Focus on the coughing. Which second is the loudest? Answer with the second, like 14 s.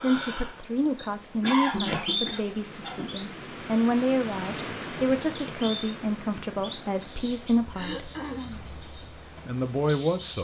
2 s.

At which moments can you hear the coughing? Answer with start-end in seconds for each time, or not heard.
1.4-3.1, 7.8-8.7.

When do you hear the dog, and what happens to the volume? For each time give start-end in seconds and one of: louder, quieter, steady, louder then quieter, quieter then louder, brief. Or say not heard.
not heard.